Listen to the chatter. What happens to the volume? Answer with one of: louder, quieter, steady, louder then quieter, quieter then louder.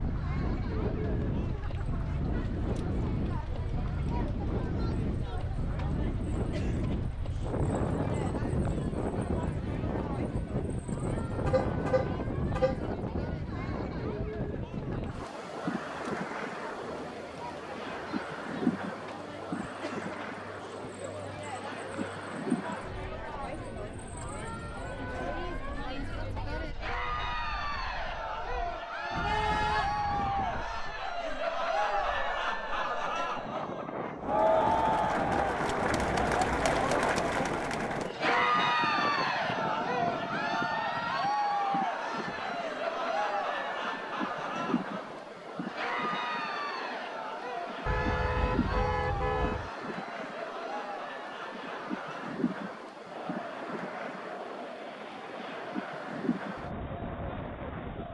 louder then quieter.